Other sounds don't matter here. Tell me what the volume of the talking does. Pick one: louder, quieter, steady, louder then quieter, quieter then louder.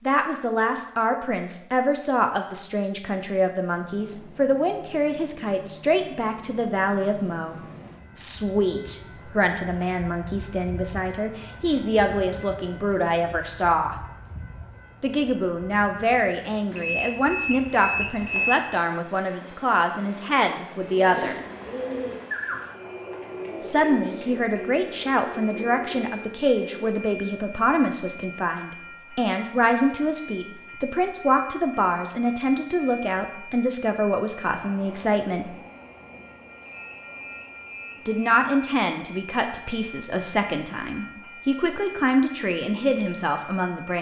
steady.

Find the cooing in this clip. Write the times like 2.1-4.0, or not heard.
20.8-27.0.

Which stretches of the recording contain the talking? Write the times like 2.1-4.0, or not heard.
0.0-7.5, 8.2-13.9, 15.0-21.4, 23.6-35.5, 38.0-43.9.